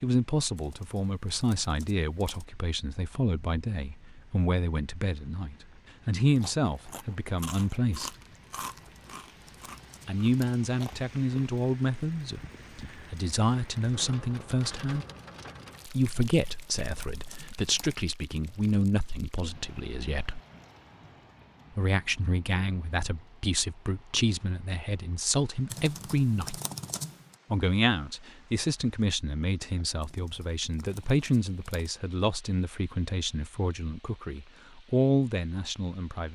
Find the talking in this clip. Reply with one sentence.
You can hear the talking from 0.0 to 8.1 s, from 10.1 to 15.1 s, from 15.8 to 20.4 s, from 21.8 to 26.6 s and from 27.5 to 36.3 s.